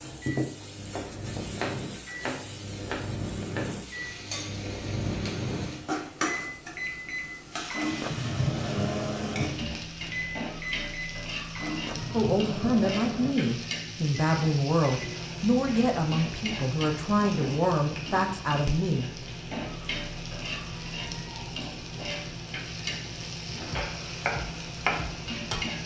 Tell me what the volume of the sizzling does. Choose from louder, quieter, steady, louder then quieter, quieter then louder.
louder.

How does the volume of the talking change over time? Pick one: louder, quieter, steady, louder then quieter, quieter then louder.
steady.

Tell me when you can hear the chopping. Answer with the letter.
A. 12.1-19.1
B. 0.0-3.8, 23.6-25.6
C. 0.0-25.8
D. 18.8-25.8
B.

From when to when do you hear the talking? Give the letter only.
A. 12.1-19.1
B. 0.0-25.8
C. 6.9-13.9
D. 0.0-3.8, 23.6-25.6
A.